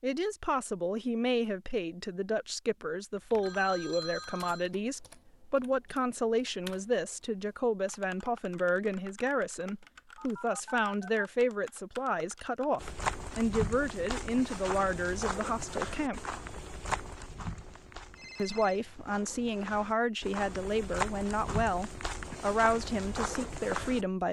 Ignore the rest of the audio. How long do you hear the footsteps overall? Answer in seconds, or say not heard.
11 s.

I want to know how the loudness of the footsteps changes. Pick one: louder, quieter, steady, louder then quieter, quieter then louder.
quieter then louder.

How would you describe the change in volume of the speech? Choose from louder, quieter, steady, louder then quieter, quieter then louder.
steady.